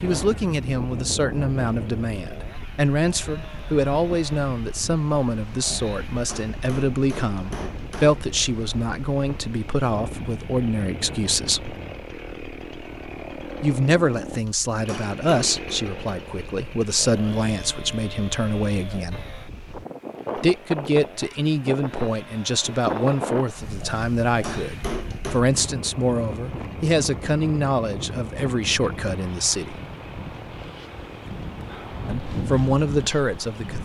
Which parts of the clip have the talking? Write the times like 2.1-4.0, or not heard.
0.0-11.8, 13.6-19.2, 20.4-29.8, 32.0-33.8.